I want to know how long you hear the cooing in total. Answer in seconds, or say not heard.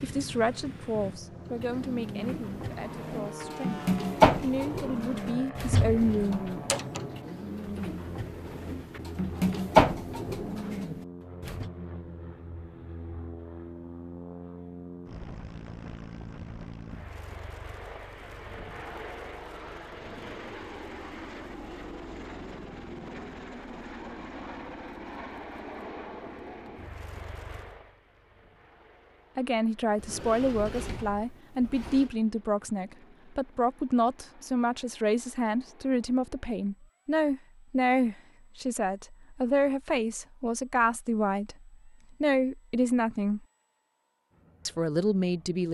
10 s.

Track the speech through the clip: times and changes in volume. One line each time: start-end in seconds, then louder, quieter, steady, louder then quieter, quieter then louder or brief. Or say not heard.
0.0-6.5 quieter then louder
29.4-43.4 steady
44.6-45.6 brief.